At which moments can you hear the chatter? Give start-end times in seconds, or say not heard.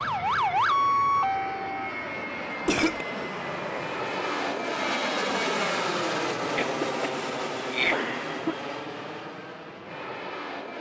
not heard.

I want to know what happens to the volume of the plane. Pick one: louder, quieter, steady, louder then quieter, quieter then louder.
louder then quieter.